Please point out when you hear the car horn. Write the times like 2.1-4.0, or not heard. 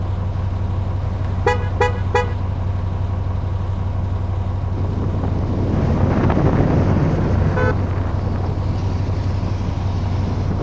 1.0-2.4, 5.7-7.8.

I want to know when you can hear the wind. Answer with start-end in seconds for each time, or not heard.
4.7-10.5.